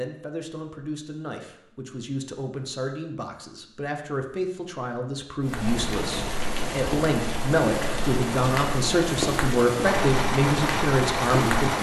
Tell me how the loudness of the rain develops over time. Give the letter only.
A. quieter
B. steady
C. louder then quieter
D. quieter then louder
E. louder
B.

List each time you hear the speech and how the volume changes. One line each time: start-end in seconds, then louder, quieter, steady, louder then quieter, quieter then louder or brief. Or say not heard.
0.0-11.7 louder.